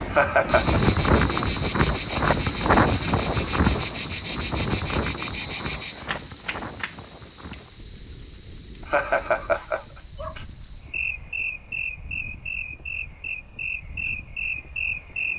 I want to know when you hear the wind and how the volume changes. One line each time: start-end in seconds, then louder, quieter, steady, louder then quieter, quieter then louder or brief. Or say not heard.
0.0-15.3 quieter.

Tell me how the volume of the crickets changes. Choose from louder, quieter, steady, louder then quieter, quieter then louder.
quieter.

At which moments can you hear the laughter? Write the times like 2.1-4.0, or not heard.
0.1-0.8, 8.8-10.4.